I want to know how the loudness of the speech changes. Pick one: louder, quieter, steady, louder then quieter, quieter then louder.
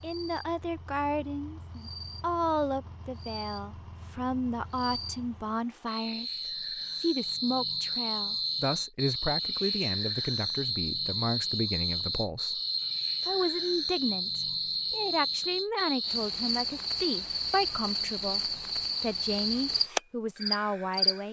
steady.